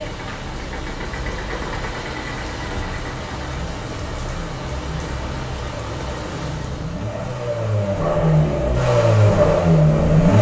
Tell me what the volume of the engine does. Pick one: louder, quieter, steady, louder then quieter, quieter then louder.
louder.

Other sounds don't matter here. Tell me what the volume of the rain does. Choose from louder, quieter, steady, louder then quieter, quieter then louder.
steady.